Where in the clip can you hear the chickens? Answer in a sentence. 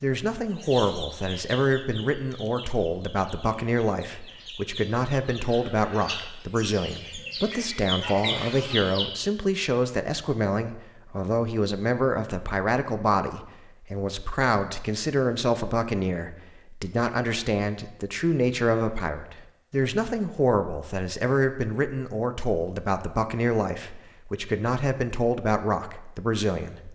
You can hear the chickens from 0.5 to 9.1 s.